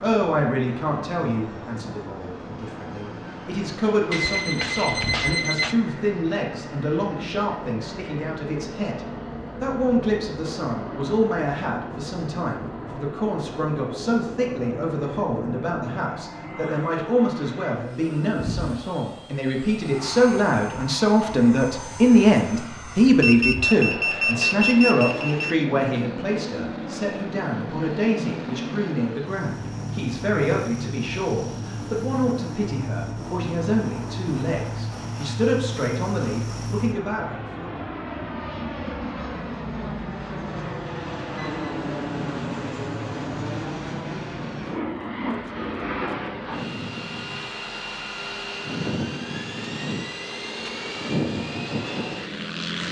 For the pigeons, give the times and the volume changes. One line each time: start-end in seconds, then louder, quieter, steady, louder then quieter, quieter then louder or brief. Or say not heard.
not heard.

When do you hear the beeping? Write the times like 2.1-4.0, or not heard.
4.1-5.8, 23.2-25.6, 40.9-41.7.